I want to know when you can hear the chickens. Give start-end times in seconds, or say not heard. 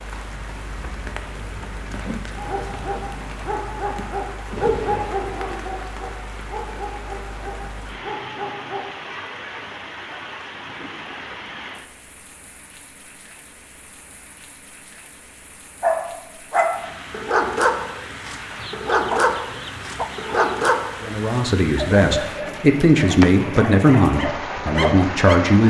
18.6-20.8.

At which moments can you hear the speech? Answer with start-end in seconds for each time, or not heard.
21.0-25.6.